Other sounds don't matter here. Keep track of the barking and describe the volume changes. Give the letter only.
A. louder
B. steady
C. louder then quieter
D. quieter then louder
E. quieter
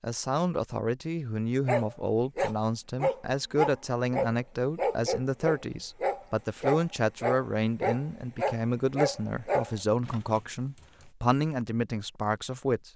B.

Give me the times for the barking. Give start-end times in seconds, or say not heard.
1.6-10.4.